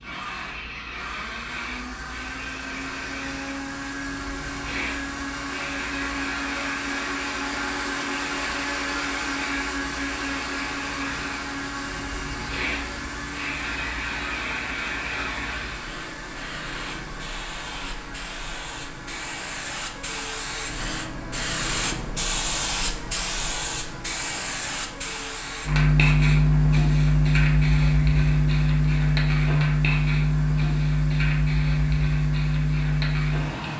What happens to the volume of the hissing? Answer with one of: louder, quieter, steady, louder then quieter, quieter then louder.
louder.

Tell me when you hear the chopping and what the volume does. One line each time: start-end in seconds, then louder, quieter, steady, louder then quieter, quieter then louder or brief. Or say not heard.
not heard.